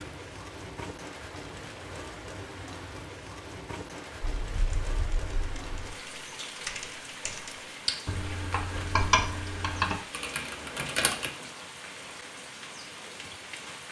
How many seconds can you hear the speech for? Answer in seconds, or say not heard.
not heard.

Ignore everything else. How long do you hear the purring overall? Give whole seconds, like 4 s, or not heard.
not heard.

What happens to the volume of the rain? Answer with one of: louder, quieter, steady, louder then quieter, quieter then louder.
steady.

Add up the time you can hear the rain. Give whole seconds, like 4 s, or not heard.
14 s.